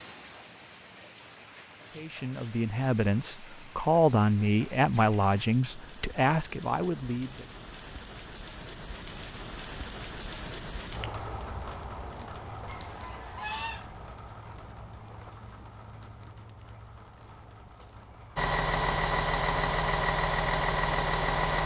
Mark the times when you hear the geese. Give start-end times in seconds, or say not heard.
12.7-13.9.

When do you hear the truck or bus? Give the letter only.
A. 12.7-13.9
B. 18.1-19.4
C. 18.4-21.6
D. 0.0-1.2
C.